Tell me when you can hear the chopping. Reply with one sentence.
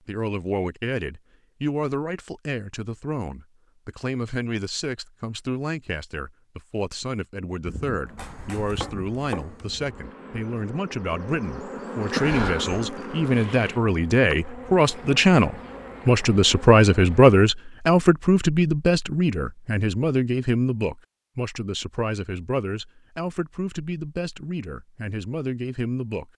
You can hear the chopping from 8.2 to 9.7 s.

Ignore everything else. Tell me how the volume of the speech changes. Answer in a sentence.
The loudness of the speech goes up, then down.